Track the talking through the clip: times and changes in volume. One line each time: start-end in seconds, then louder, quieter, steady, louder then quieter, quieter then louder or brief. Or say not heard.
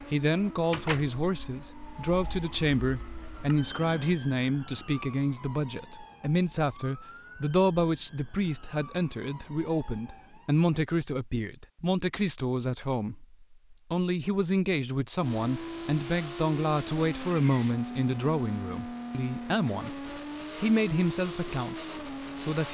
0.1-22.6 steady.